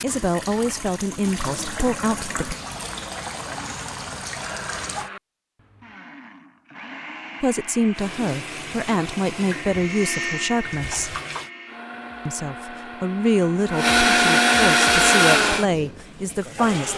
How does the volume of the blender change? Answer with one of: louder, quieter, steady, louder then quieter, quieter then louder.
louder.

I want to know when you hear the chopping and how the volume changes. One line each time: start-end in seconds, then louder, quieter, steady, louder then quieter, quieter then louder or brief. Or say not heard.
not heard.